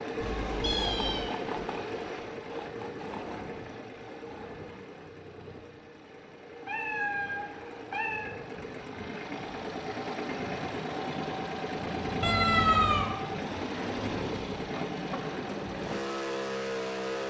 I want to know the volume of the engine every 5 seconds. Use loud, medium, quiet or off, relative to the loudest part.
loud, medium, loud, loud.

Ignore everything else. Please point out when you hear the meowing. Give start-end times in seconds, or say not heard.
0.2-1.3, 6.6-8.3, 12.2-13.2.